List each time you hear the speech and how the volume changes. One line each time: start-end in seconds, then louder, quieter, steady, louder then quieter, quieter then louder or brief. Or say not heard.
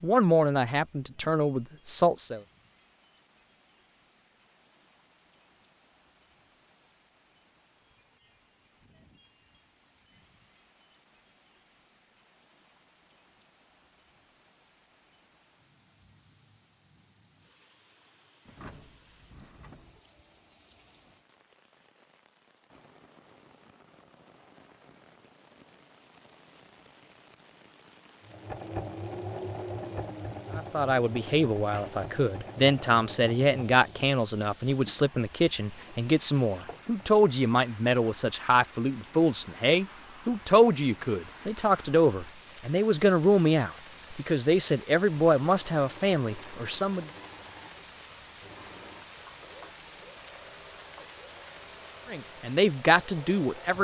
0.0-2.4 brief
30.6-47.1 steady
52.0-53.8 brief.